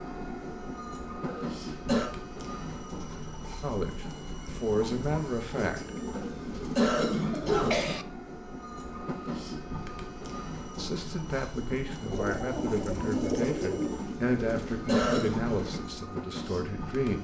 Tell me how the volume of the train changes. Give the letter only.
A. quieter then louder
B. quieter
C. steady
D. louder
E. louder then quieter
C.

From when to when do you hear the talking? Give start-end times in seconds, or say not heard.
3.6-6.0, 10.8-17.2.